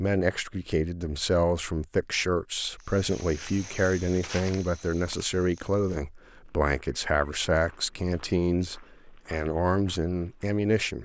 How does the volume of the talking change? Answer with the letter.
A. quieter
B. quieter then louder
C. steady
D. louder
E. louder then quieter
C.